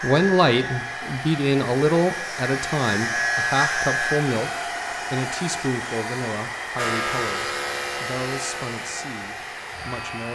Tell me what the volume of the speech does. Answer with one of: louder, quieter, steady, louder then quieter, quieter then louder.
quieter.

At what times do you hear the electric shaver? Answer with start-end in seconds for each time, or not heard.
0.0-4.2, 6.8-10.3.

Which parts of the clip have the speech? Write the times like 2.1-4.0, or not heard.
0.0-10.3.